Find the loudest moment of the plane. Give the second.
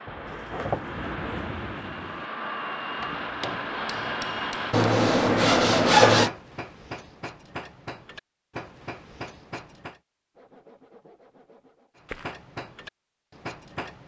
4 s.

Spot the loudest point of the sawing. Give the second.
6 s.